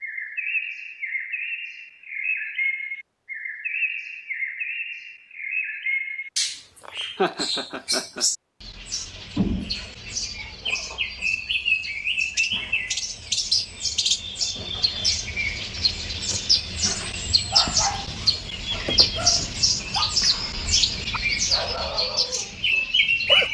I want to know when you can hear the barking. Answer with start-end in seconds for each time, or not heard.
17.5-23.4.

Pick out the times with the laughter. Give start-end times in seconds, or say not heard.
6.8-8.2.